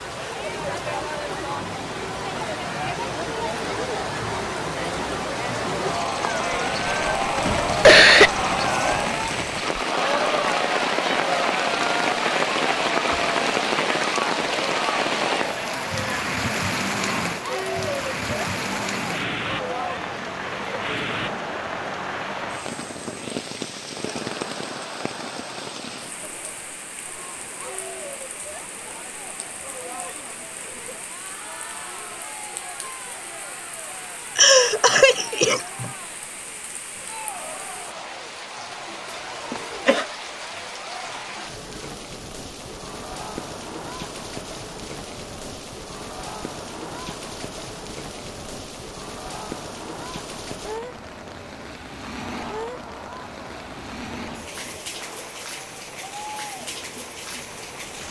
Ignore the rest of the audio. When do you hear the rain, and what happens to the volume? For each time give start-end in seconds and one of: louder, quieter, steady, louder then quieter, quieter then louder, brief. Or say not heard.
0.0-58.0 quieter.